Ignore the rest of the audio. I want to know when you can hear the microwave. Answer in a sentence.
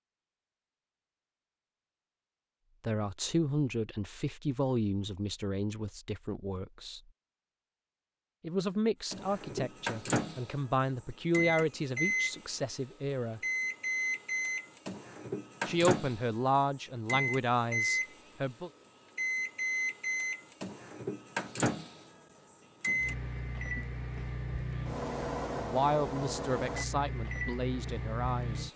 You can hear the microwave from 9.1 to 28.7 s.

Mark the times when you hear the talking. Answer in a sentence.
You can hear the talking from 2.8 to 7.0 s, from 8.4 to 13.4 s, from 15.7 to 18.7 s and from 25.6 to 28.7 s.